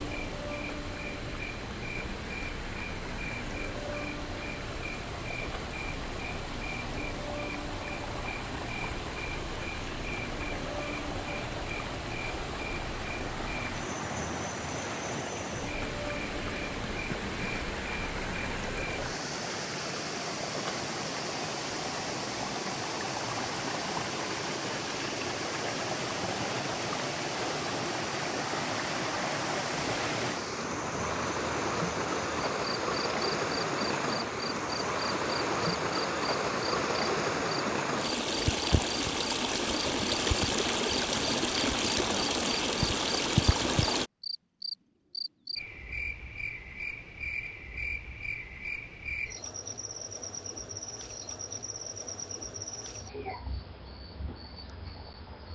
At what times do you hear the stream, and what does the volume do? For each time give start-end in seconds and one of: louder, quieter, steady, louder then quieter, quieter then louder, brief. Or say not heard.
0.0-44.1 louder.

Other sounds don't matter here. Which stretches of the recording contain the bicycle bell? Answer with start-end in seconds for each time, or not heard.
not heard.